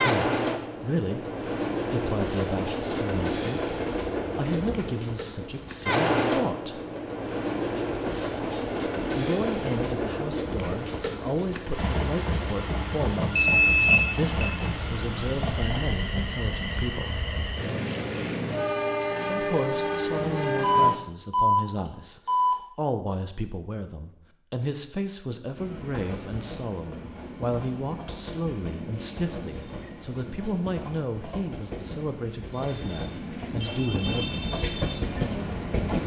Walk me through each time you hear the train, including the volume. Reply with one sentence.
The train can be heard from 0.0 to 20.9 s, at a steady volume; and from 25.6 to 36.0 s, getting louder.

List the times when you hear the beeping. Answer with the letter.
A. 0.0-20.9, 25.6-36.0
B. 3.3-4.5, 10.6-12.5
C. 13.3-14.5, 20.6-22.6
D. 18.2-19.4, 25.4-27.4
C.